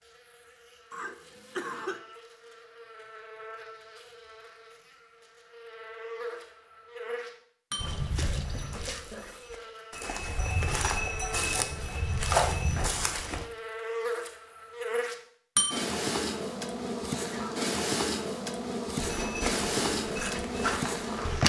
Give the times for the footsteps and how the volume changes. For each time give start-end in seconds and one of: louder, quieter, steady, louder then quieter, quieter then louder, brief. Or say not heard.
7.8-13.4 quieter then louder
18.9-21.4 brief.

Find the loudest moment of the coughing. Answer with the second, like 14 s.
2 s.